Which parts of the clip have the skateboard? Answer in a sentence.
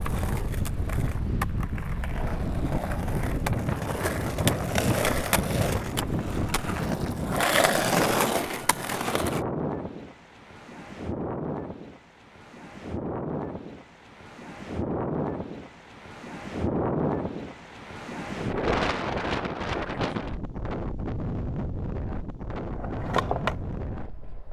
The skateboard can be heard from 0.0 to 9.4 s and from 22.7 to 24.4 s.